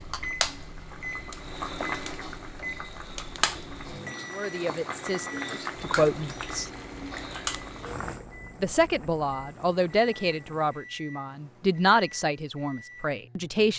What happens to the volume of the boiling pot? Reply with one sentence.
The loudness of the boiling pot goes down.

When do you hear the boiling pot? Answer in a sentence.
You can hear the boiling pot from 0.0 to 10.9 s.